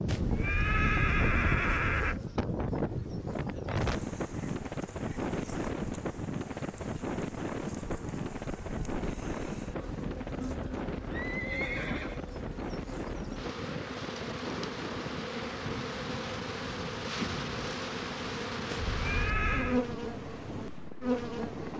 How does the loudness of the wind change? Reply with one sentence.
The volume of the wind goes down.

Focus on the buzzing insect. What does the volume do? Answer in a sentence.
The volume of the buzzing insect goes up.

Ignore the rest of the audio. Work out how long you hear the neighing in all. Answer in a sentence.
You can hear the neighing for 5 seconds altogether.